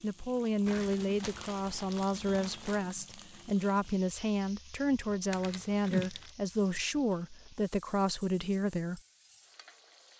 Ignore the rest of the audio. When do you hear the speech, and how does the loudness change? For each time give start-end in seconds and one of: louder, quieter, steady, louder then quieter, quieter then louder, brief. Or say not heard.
0.0-9.0 steady.